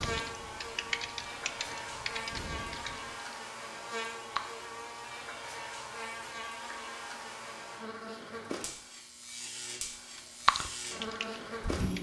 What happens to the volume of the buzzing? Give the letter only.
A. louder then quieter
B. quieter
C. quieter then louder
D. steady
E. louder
D.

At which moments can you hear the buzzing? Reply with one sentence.
You can hear the buzzing from 0.0 to 11.9 s.